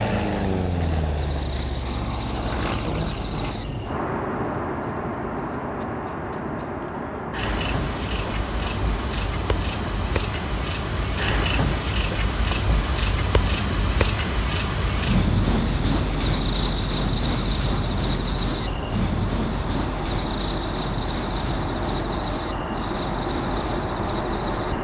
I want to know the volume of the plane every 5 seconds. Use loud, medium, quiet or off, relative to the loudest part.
loud, loud, medium, medium, loud.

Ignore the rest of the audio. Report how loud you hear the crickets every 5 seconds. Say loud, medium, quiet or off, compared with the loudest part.
medium, loud, loud, loud, medium.